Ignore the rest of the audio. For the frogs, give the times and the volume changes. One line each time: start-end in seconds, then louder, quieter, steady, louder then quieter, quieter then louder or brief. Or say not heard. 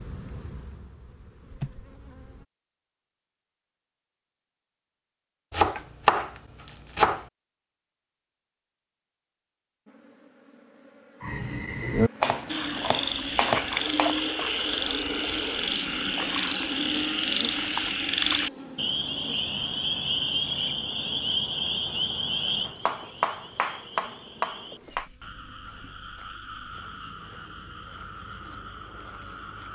11.2-29.7 quieter.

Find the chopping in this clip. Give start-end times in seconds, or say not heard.
5.5-7.2, 12.2-14.2, 22.6-25.1.